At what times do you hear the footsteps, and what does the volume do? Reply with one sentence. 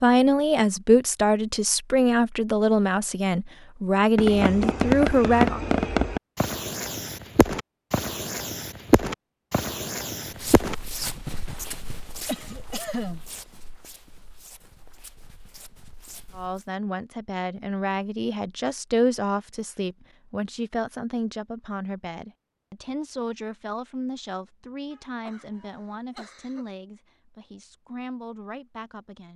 The footsteps can be heard from 10.3 to 16.7 s, getting quieter.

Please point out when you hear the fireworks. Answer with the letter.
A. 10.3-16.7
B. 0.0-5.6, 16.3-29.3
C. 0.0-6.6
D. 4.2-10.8
D.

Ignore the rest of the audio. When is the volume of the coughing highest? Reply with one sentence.
The volume of the coughing peaks at 13 seconds.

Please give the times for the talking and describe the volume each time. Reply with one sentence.
The talking can be heard from 0.0 to 5.6 s, at a steady volume; and from 16.3 to 29.3 s, getting quieter.